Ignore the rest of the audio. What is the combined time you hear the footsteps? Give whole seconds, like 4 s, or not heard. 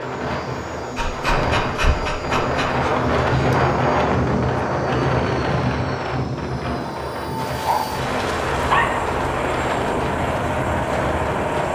not heard.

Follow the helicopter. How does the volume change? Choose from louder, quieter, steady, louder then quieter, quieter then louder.
louder.